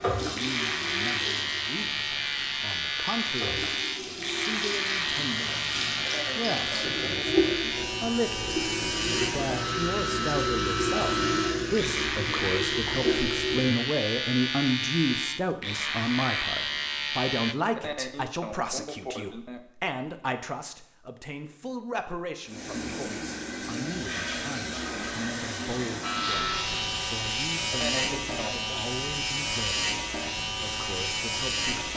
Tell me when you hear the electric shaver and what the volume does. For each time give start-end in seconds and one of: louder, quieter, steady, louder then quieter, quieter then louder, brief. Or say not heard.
0.3-17.6 steady
26.0-31.9 steady.